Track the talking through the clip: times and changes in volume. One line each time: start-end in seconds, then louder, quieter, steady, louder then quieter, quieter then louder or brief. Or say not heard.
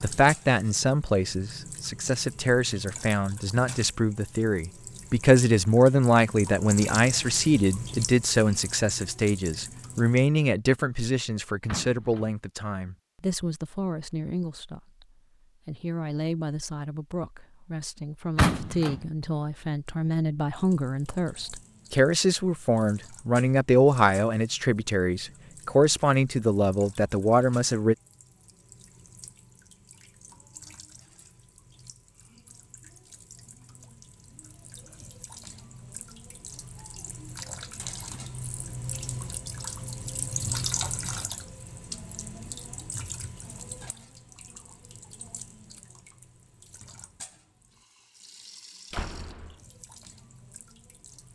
0.0-27.9 quieter then louder.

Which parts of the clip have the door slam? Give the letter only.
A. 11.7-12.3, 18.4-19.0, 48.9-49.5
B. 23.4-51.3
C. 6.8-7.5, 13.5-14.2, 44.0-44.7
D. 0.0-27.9
A.